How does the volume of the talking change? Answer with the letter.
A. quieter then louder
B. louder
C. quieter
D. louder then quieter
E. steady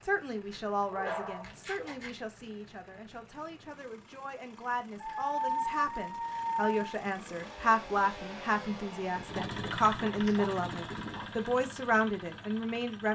B.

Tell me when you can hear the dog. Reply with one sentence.
The dog can be heard from 0.9 to 2.2 s, from 5.0 to 6.7 s and from 9.2 to 11.3 s.